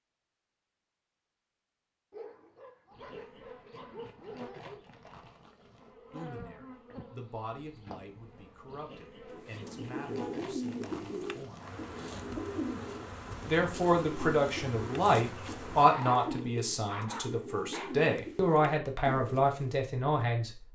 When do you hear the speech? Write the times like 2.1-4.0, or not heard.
6.1-11.7, 13.4-20.6.